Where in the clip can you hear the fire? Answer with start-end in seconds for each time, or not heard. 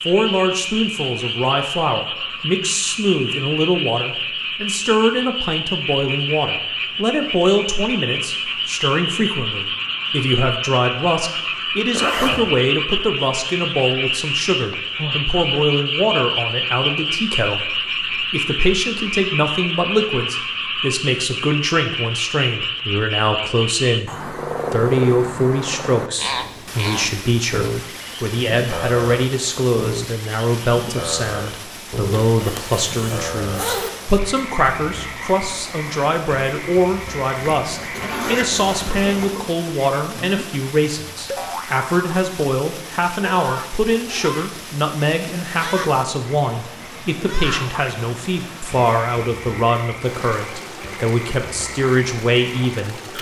not heard.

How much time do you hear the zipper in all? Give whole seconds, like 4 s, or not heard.
4 s.